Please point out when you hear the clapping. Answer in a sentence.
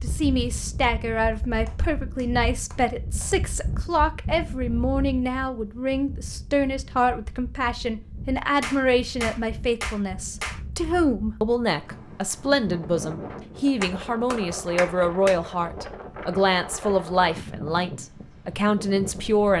You can hear the clapping from 1.6 to 3.3 s, from 8.6 to 10.6 s and from 13.8 to 15.3 s.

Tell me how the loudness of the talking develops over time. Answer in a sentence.
The volume of the talking stays about the same.